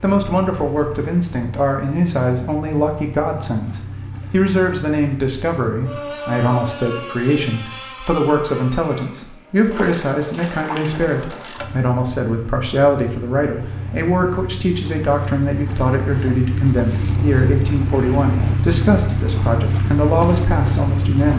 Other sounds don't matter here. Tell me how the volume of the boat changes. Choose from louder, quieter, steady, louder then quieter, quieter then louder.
louder.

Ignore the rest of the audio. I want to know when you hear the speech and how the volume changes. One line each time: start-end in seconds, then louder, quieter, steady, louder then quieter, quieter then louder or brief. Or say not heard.
0.0-21.3 steady.